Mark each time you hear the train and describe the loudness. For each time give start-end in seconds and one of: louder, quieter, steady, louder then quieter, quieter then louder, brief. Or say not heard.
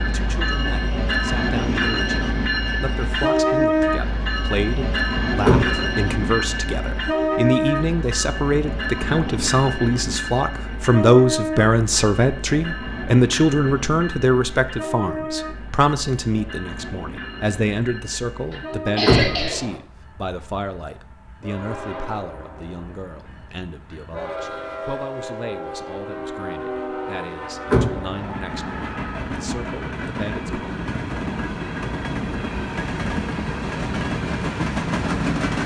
0.0-35.6 quieter then louder.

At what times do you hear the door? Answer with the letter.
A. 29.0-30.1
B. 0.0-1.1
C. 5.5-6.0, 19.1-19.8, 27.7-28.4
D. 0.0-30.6
C.